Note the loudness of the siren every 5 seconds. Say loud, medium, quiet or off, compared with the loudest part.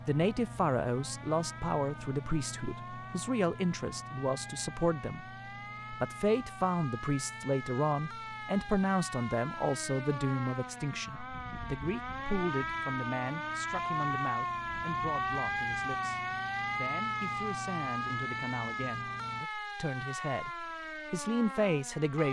quiet, medium, loud, loud, medium.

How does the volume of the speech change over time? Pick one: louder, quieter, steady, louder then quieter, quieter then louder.
quieter then louder.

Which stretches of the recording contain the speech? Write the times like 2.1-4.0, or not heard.
0.1-5.3, 5.9-22.2.